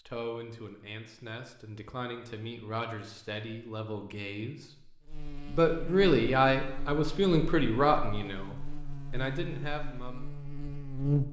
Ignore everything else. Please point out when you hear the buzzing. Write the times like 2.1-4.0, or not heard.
5.0-11.2.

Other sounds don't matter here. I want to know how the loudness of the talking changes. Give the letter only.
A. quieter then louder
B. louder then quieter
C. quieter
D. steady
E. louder
B.